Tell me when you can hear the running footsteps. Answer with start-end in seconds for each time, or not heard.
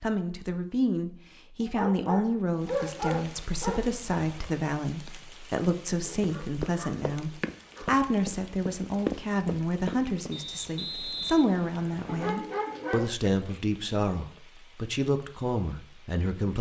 6.2-10.4.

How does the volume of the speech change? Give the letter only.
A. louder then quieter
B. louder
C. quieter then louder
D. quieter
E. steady
E.